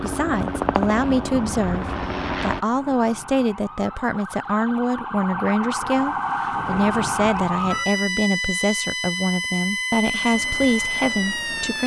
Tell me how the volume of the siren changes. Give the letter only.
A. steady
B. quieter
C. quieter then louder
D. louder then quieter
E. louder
E.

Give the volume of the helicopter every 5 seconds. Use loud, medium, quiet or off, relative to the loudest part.
loud, off, quiet.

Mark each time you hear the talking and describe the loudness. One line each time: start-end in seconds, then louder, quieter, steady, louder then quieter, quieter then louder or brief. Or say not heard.
0.0-11.8 steady.